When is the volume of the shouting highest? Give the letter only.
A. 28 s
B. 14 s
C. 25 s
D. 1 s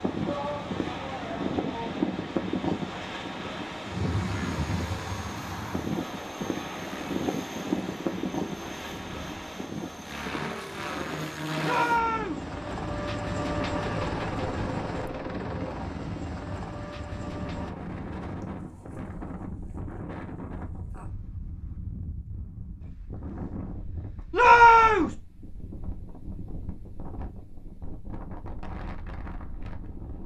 C.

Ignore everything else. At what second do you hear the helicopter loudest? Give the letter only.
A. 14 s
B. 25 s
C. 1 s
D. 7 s
A.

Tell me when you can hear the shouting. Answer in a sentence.
The shouting can be heard from 0.2 to 2.0 s, from 11.6 to 12.4 s and from 24.3 to 25.1 s.